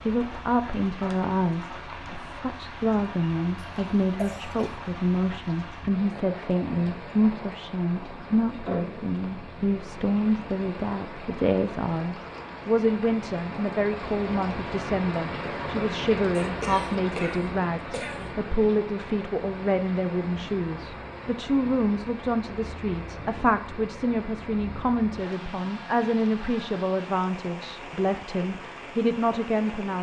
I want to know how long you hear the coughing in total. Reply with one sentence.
The coughing can be heard for 3 seconds in total.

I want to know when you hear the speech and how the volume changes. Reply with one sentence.
You can hear the speech from 0.1 to 29.9 s, at a steady volume.